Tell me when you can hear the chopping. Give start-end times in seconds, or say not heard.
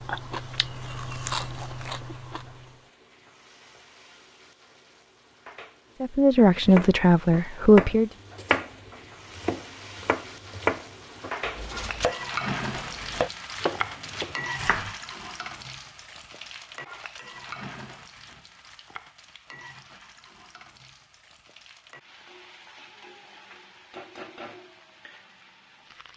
6.5-14.9.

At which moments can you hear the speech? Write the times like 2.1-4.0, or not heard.
6.0-8.1.